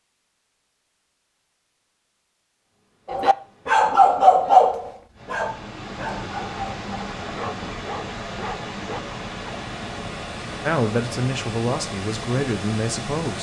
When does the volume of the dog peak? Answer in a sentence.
The volume of the dog peaks at 4 seconds.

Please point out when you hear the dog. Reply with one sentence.
You can hear the dog from 3.0 to 9.6 s.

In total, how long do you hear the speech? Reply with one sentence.
The speech can be heard for 3 seconds in total.